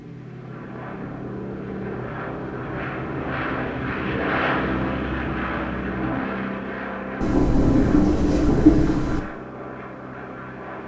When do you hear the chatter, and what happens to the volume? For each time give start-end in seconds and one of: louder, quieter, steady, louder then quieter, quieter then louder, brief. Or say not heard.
not heard.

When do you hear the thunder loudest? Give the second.
9 s.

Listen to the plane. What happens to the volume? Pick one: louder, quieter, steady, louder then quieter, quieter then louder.
louder then quieter.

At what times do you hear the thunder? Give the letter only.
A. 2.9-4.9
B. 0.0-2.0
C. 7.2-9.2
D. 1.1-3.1
C.